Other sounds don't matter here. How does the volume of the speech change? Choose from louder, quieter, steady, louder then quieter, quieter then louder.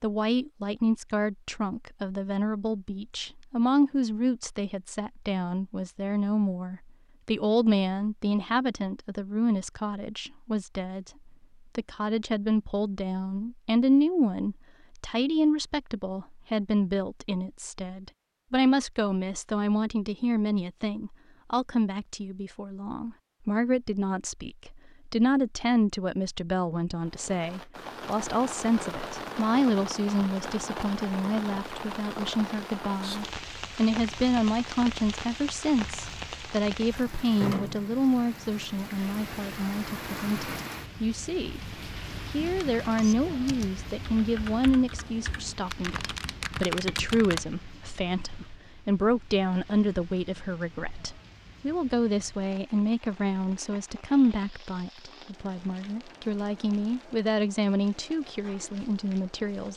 steady.